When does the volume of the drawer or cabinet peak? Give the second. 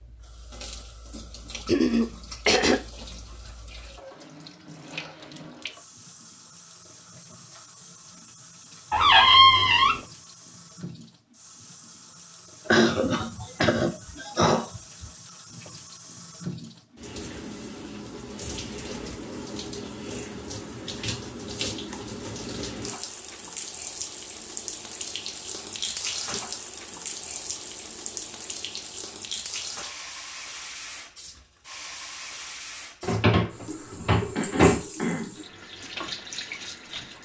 9 s.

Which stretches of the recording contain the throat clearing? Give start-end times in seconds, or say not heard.
1.6-2.8, 12.7-15.1, 34.4-35.4.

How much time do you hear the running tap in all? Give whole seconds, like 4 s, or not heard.
37 s.